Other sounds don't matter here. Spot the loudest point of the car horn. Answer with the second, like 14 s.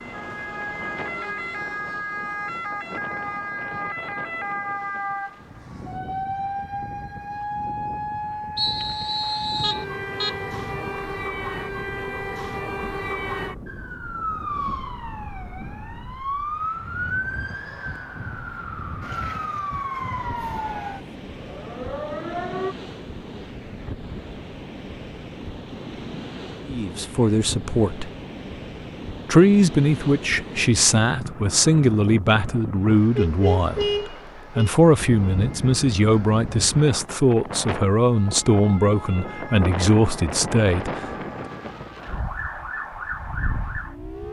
34 s.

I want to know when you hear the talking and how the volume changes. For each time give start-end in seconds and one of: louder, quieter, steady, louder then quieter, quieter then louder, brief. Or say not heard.
26.6-28.1 brief
29.2-41.0 steady.